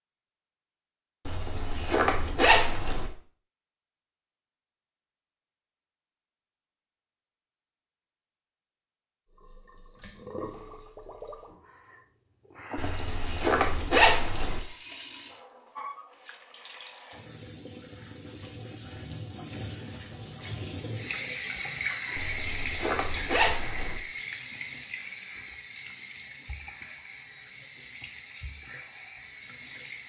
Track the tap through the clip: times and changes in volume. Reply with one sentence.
You can hear the tap from 9.3 to 30.0 s, getting louder then quieter.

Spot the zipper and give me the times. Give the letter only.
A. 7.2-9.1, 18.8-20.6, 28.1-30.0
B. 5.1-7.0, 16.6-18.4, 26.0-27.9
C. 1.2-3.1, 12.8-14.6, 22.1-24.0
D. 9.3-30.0
C.